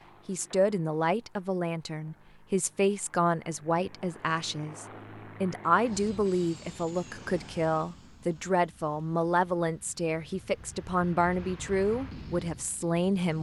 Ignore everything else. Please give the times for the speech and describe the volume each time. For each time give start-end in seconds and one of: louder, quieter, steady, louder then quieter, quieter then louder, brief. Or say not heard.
0.2-13.3 steady.